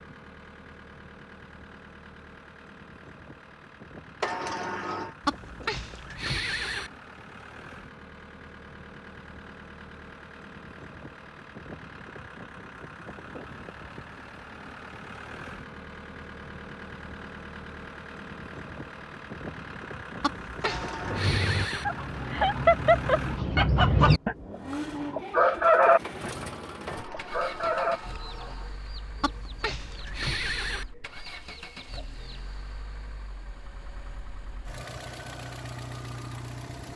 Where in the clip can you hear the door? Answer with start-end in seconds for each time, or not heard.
4.2-5.2, 20.6-21.4, 26.9-28.8.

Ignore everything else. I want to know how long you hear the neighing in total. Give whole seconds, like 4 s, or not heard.
5 s.